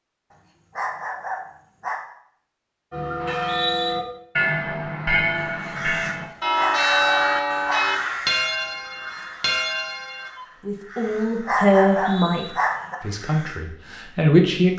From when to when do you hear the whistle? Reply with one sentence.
You can hear the whistle from 3.2 to 4.0 s and from 11.9 to 12.5 s.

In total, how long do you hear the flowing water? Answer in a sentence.
You can't hear the flowing water here.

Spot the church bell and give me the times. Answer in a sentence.
You can hear the church bell from 2.9 to 10.3 s.